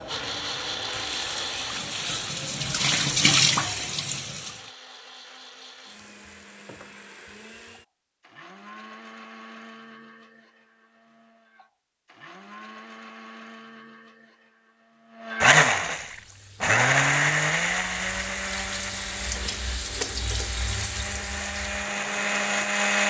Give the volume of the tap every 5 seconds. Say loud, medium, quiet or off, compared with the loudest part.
loud, off, off, medium, medium.